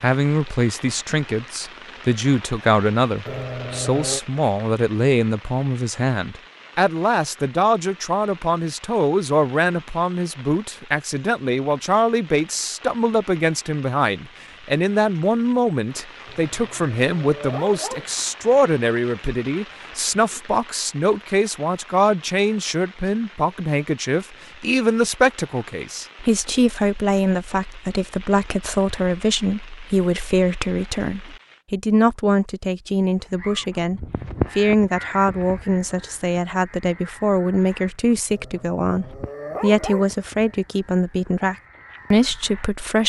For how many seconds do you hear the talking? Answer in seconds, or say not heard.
43 s.